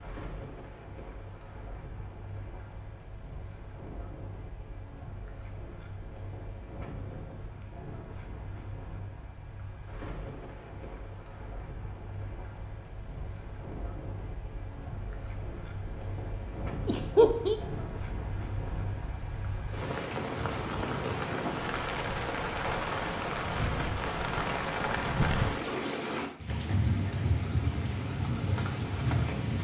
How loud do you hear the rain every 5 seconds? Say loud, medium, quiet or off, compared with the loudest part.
quiet, quiet, quiet, medium, loud, loud.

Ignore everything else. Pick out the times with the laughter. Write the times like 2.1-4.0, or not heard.
16.9-17.6.